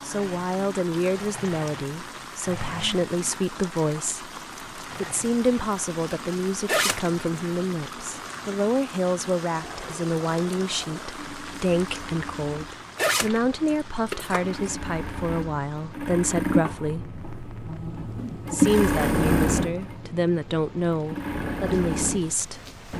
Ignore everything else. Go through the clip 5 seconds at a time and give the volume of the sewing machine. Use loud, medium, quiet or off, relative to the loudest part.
quiet, quiet, quiet, loud, medium.